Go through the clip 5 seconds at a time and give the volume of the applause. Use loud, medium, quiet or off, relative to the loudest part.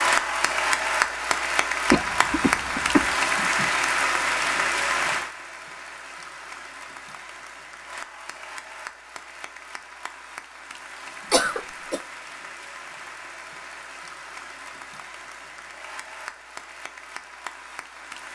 loud, quiet, quiet, quiet.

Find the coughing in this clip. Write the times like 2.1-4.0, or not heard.
1.9-3.1, 11.3-12.0.